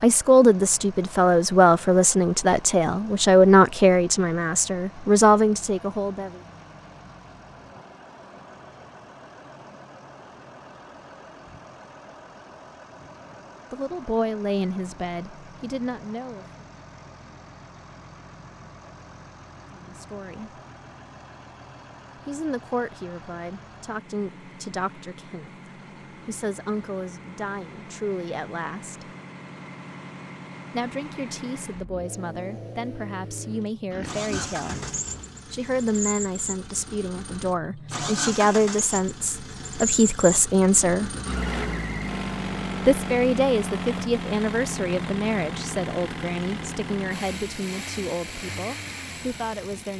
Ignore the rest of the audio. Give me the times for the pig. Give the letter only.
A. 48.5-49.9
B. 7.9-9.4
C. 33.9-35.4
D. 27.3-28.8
C.